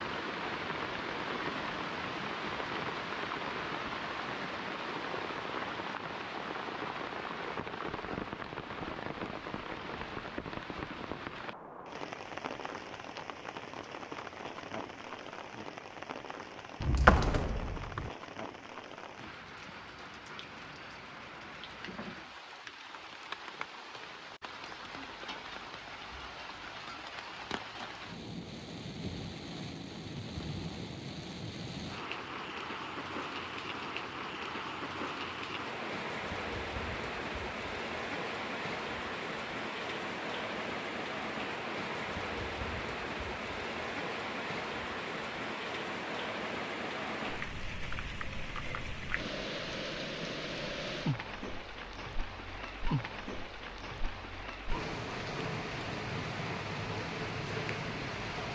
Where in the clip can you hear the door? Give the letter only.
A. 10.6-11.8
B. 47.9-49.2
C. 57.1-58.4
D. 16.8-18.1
D.